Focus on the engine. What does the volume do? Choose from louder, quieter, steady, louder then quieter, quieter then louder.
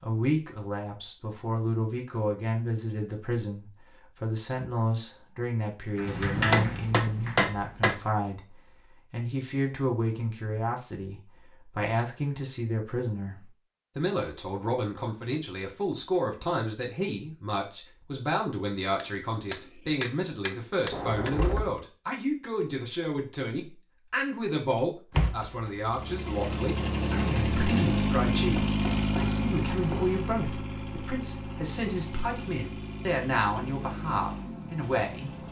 quieter.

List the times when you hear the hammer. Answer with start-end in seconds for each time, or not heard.
6.5-8.1, 18.9-21.4, 28.4-30.2.